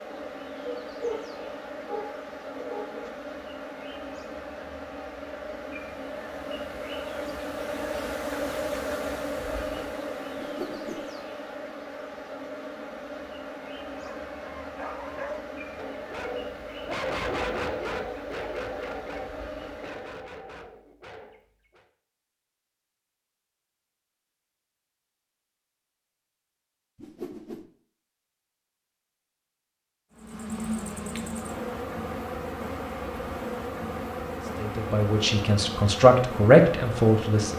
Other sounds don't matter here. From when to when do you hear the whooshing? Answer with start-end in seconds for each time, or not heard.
10.3-11.1, 26.9-27.6.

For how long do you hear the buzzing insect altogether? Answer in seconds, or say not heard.
28 s.